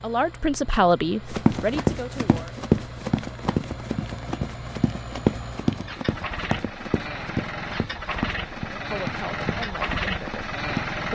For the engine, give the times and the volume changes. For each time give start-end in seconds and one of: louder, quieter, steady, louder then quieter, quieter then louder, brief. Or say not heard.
0.0-11.1 louder.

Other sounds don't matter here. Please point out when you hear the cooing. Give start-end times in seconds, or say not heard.
not heard.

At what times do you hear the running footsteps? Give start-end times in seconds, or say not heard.
1.3-10.8.